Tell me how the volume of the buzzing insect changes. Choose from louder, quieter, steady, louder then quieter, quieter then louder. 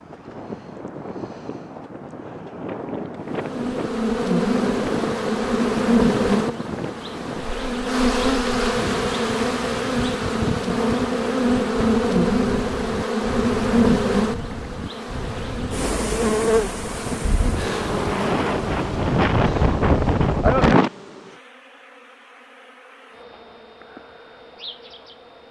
quieter.